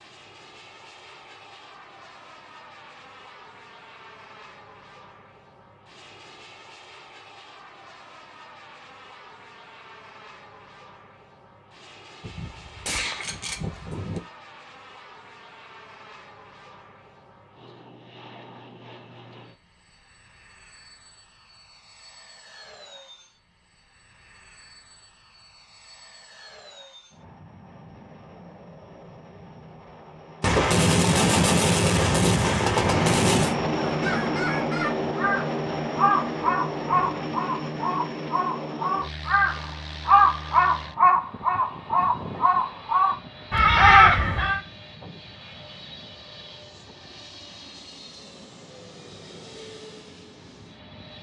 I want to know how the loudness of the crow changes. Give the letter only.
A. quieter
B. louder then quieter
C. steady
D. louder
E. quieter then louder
D.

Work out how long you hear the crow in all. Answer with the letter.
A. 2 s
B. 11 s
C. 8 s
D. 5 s
B.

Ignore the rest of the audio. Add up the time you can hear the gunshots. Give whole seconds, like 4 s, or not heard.
5 s.